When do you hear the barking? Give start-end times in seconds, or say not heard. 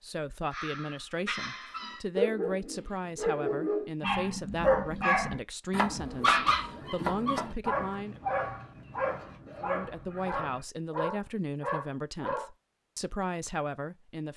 0.5-12.5.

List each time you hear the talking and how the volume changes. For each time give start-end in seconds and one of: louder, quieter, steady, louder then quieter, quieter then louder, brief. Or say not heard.
0.0-8.2 steady
9.6-14.3 quieter then louder.